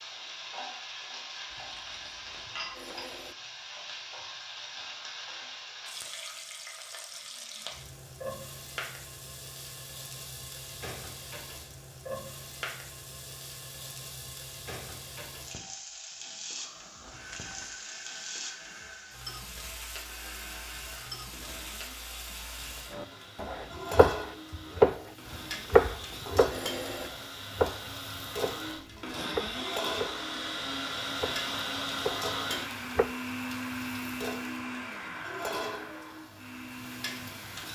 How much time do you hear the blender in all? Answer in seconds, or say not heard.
21 s.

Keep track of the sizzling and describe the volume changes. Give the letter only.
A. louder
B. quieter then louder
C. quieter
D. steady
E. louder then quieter
D.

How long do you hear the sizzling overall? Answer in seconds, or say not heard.
38 s.